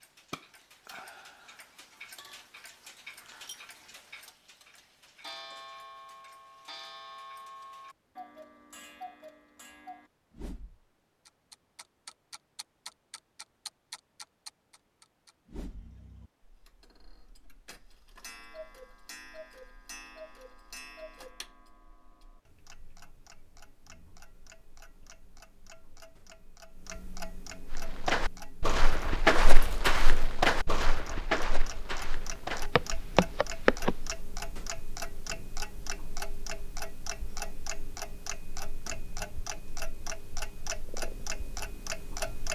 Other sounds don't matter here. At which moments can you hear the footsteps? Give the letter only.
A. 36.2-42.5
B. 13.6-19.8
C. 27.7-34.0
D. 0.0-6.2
C.